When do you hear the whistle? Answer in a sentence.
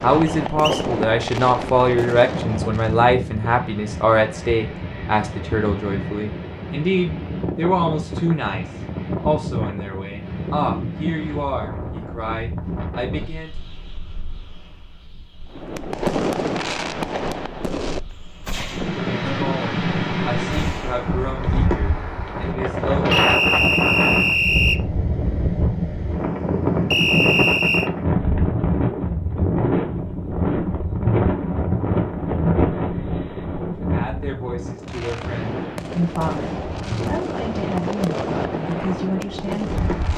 You can hear the whistle from 0.2 to 0.8 s, from 23.1 to 24.8 s and from 26.9 to 27.9 s.